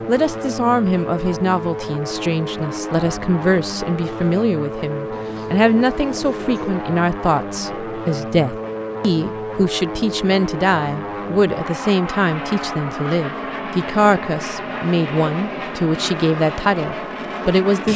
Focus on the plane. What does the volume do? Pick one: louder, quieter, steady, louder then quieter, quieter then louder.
steady.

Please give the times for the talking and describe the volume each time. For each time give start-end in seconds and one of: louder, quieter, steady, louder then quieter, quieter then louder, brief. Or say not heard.
0.1-17.9 steady.